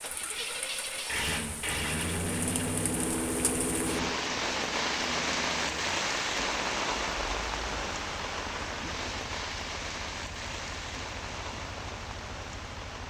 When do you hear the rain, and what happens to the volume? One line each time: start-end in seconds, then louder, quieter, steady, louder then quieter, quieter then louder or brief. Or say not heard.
0.0-13.0 louder then quieter.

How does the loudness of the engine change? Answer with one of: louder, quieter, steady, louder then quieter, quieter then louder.
quieter.